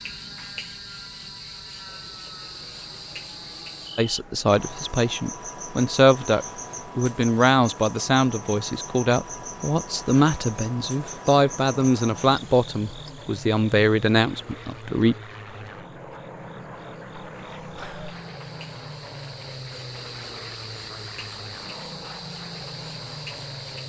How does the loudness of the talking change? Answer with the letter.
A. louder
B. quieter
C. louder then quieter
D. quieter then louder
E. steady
E.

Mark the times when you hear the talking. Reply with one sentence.
You can hear the talking from 4.0 to 15.2 s.